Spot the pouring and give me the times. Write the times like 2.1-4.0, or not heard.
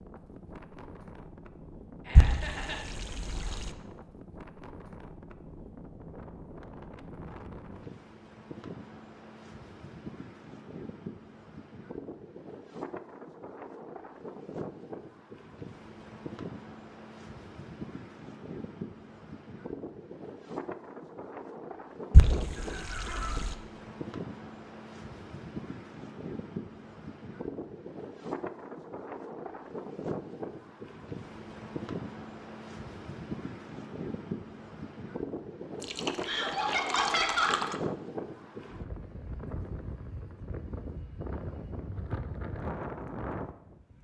2.1-3.8, 22.1-23.6, 35.8-37.8.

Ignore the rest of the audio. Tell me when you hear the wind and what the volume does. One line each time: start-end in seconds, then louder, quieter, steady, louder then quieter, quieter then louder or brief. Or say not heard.
0.0-43.9 louder.